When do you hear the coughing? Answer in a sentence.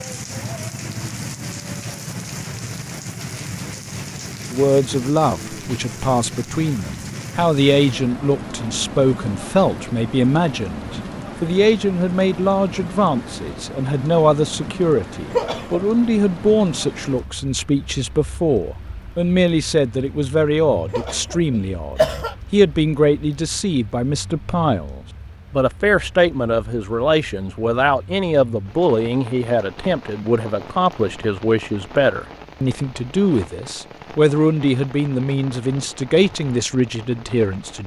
The coughing can be heard from 15.3 to 15.8 s and from 20.9 to 22.4 s.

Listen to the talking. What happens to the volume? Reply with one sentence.
The loudness of the talking stays about the same.